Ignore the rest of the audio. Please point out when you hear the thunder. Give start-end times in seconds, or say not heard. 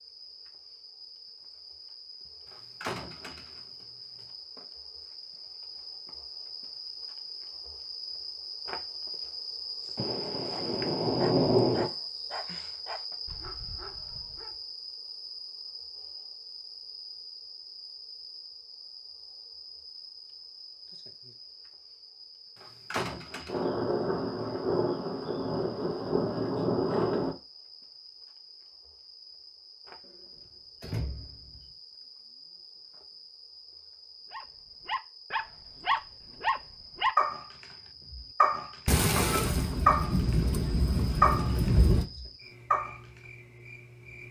9.9-11.9, 23.4-27.4, 38.9-42.0.